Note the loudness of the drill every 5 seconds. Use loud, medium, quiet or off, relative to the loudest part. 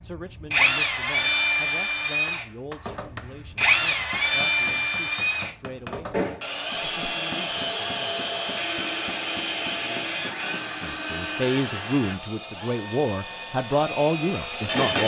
loud, loud, medium.